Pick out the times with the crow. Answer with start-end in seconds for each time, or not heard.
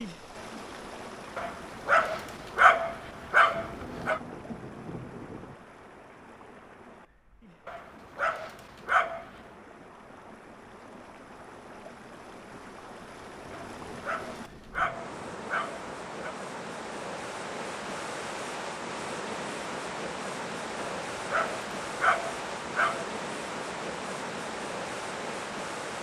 not heard.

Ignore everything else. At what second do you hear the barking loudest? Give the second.
3 s.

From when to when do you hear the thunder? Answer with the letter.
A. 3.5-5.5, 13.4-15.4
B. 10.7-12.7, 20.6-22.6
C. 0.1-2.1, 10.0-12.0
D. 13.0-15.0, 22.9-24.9
A.